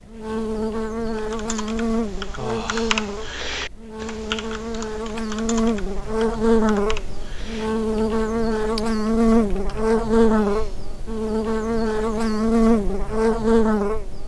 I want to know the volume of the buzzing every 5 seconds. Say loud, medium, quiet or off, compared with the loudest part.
medium, loud, loud.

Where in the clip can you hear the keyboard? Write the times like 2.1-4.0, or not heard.
1.1-9.8.